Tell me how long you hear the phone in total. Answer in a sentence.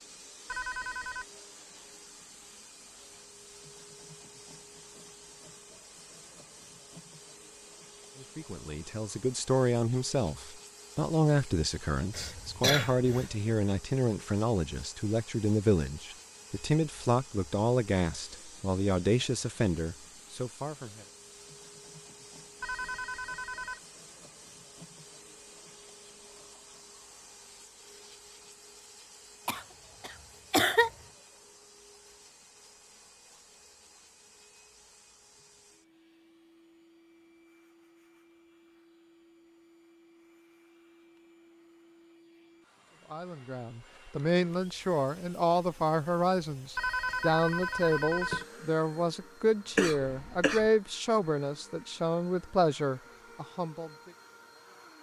The phone can be heard for 4 seconds in total.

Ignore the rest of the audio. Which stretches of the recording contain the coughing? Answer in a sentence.
The coughing can be heard from 12.2 to 13.3 s, from 29.4 to 30.9 s and from 49.8 to 50.7 s.